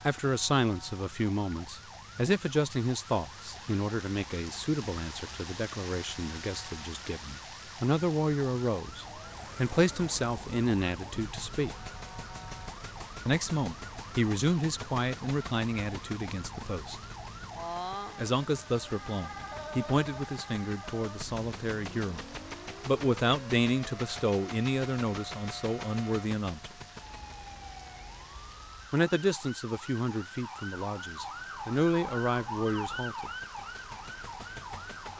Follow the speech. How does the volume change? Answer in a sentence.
The loudness of the speech stays about the same.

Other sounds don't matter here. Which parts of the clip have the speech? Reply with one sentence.
The speech can be heard from 0.0 to 11.7 s, from 13.2 to 16.9 s, from 18.1 to 22.2 s, from 22.9 to 26.7 s and from 28.9 to 33.3 s.